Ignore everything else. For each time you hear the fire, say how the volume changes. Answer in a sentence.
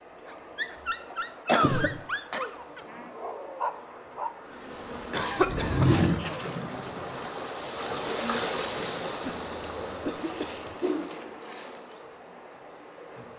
You can't hear the fire here.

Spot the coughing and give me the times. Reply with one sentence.
You can hear the coughing from 1.4 to 2.5 s, from 5.1 to 6.5 s and from 9.2 to 10.8 s.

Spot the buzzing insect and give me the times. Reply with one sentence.
The buzzing insect can be heard from 4.5 to 12.1 s.